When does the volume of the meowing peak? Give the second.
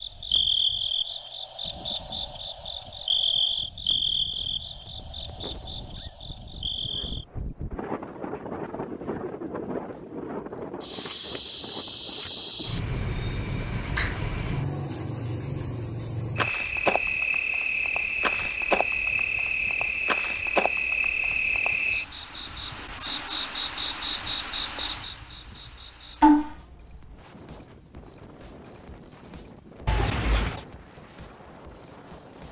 30 s.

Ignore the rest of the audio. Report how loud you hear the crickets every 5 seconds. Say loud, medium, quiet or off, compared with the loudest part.
loud, quiet, medium, loud, loud, loud, loud.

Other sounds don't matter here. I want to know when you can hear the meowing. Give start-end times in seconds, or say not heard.
4.3-6.1, 29.9-30.6.